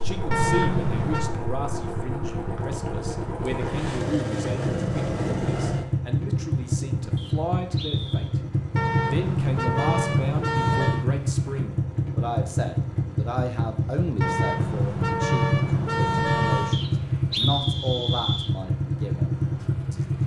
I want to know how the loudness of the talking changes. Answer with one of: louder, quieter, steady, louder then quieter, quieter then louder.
steady.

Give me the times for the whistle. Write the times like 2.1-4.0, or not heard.
2.5-3.2, 7.2-8.3, 16.7-18.5.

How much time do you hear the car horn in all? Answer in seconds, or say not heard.
6 s.